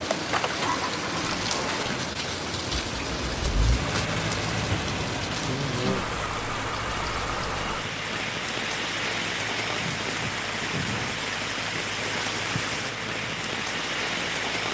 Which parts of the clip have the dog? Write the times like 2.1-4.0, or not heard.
not heard.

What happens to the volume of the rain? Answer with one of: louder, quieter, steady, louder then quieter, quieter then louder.
steady.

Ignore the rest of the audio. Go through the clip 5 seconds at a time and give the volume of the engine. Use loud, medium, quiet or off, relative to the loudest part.
loud, medium, medium.